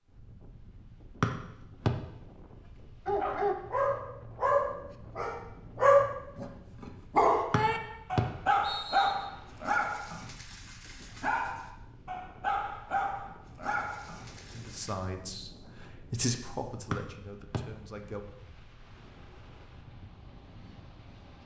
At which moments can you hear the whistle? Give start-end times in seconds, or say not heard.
1.2-1.9, 7.5-9.2, 16.9-17.6.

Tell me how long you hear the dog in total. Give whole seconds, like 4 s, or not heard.
12 s.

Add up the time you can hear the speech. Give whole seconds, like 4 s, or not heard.
4 s.